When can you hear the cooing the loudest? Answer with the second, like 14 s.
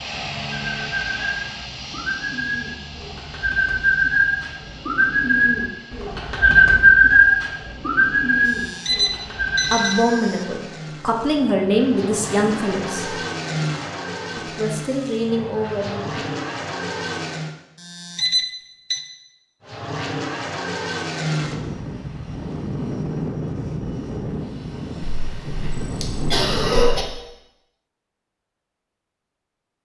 7 s.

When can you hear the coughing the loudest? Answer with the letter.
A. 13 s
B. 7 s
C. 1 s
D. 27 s
D.